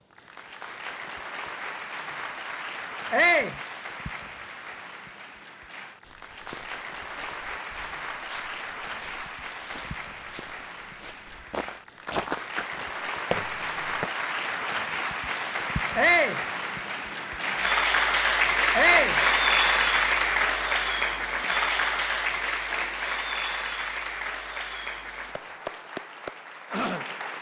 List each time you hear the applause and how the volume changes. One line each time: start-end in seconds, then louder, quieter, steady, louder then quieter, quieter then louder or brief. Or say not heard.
0.0-27.3 louder then quieter.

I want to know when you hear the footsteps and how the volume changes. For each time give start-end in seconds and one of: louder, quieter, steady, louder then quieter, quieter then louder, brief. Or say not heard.
6.0-14.1 louder.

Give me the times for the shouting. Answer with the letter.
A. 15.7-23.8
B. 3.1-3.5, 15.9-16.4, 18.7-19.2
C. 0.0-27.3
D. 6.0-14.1
B.